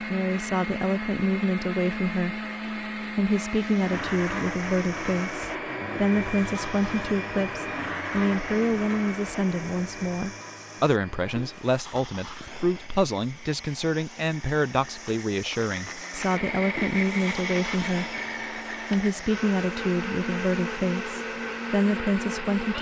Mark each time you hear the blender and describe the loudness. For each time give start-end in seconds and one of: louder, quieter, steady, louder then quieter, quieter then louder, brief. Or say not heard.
0.0-22.7 quieter then louder.